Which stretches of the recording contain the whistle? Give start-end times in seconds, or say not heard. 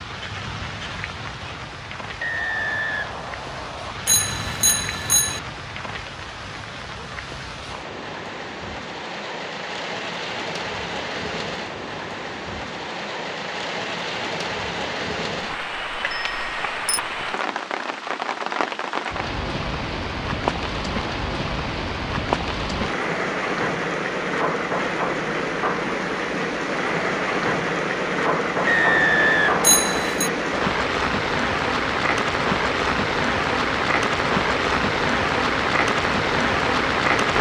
2.2-4.0, 28.6-30.1.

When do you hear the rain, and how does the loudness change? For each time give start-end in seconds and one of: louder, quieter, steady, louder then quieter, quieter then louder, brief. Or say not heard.
0.0-37.3 louder.